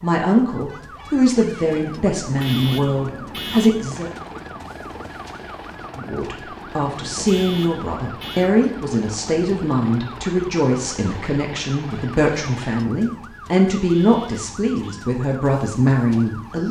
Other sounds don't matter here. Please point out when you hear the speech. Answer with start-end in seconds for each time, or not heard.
0.0-4.1, 6.0-16.6.